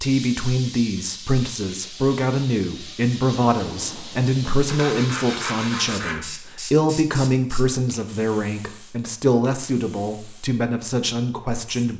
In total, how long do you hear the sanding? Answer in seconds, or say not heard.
2 s.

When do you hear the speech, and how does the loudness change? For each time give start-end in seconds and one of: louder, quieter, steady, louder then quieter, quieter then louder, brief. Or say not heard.
0.0-11.9 steady.